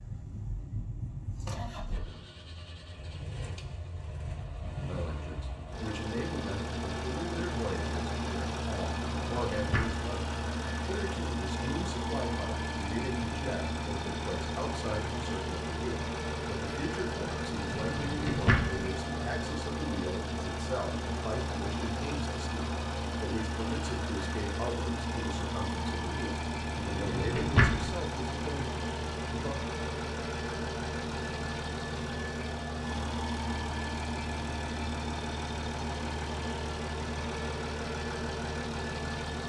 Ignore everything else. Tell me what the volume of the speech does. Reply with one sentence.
The volume of the speech stays about the same.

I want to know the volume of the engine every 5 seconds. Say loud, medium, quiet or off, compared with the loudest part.
medium, loud, loud, loud, loud, loud, loud, loud.